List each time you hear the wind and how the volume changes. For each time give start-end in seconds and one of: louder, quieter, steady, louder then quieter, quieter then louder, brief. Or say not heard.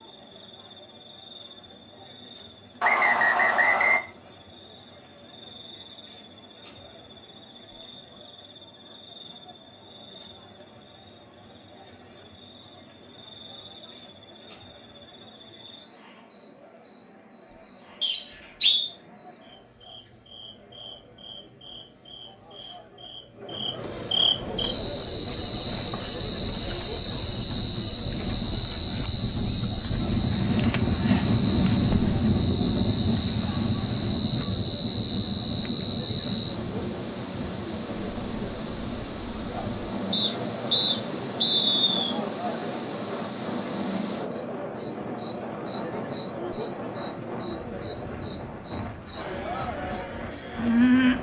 24.4-51.1 louder then quieter.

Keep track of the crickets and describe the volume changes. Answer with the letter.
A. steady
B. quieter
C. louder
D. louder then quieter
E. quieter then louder
C.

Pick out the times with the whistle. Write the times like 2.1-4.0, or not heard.
2.8-4.0, 18.0-18.9, 40.1-42.1.